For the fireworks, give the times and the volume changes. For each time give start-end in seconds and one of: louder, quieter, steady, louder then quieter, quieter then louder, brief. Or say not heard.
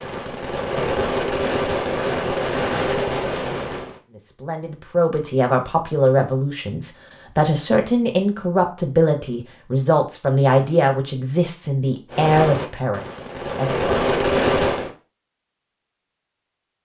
0.0-4.0 steady
12.1-14.9 brief.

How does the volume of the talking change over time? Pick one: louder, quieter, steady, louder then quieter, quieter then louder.
steady.